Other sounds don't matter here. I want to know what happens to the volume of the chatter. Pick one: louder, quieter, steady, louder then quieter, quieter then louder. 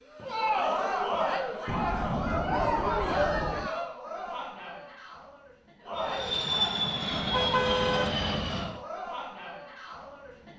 quieter.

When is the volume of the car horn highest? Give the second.
8 s.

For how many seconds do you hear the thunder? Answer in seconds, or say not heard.
2 s.